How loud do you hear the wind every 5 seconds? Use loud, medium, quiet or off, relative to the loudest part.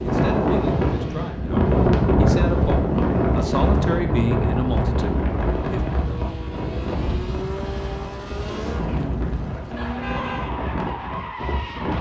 loud, medium, medium.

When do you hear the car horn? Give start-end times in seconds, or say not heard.
9.8-10.6.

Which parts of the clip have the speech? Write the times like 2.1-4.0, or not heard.
0.0-5.8.